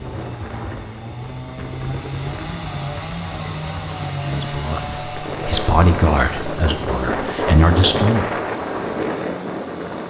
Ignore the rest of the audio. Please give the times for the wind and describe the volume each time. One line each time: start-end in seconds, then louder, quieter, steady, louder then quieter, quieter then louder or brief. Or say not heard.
0.0-10.0 louder.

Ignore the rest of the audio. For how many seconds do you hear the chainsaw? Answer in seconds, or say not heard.
10 s.